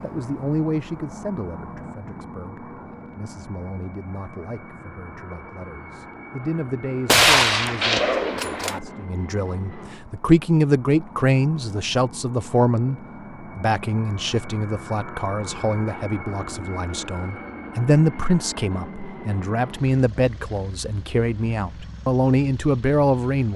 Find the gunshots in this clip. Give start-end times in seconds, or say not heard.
7.0-8.8.